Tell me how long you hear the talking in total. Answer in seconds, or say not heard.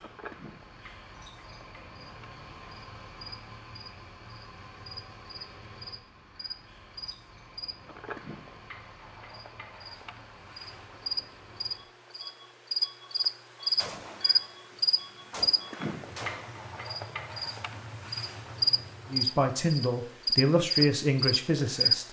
3 s.